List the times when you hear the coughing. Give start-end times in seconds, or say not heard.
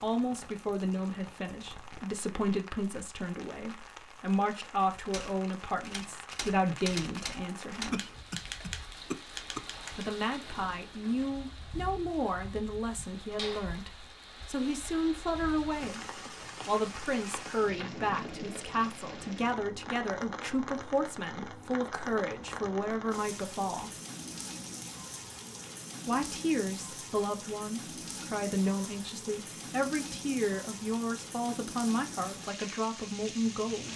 7.9-9.6.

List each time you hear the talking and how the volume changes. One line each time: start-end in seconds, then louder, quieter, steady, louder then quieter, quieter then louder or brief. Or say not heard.
0.0-8.1 steady
9.9-23.9 steady
26.1-33.9 steady.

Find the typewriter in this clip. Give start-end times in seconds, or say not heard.
5.1-10.1.